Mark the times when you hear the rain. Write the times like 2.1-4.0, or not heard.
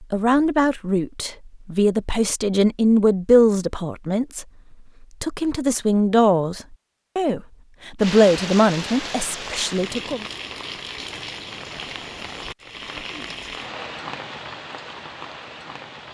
8.0-16.0.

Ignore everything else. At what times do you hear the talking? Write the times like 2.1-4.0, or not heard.
0.0-4.5, 5.2-10.2.